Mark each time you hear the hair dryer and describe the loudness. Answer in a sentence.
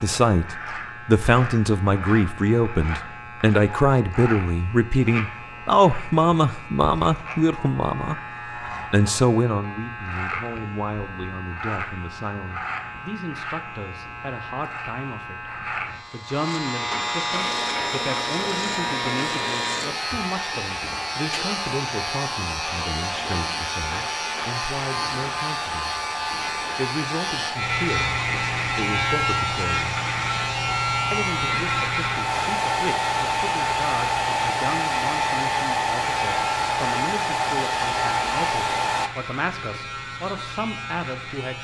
The hair dryer can be heard from 17.3 to 39.1 s, getting louder.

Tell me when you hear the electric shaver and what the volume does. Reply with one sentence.
The electric shaver can be heard from 0.0 to 41.6 s, getting louder then quieter.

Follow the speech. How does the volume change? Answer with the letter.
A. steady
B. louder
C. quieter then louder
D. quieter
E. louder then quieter
D.